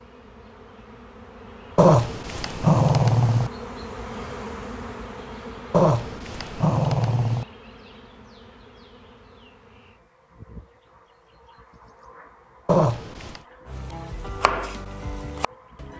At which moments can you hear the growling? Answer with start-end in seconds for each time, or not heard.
1.8-3.5, 5.7-7.5, 12.7-13.4.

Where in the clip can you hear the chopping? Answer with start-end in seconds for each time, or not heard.
13.7-15.9.